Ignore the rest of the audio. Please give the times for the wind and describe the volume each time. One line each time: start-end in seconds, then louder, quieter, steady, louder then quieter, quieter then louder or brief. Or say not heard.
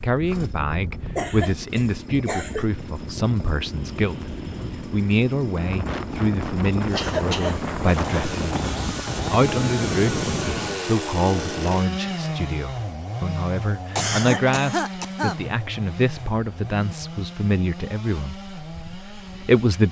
0.0-10.8 louder.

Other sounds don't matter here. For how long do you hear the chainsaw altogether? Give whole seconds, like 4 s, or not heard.
20 s.